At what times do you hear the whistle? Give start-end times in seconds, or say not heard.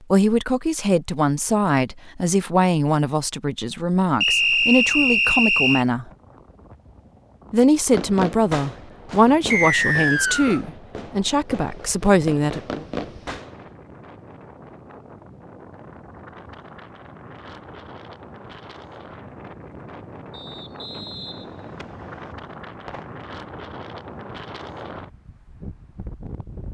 4.2-5.8, 9.5-10.6, 20.3-22.4.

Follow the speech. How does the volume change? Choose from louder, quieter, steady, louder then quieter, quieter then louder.
steady.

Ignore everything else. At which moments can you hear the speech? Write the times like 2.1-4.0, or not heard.
0.1-6.0, 7.5-12.8.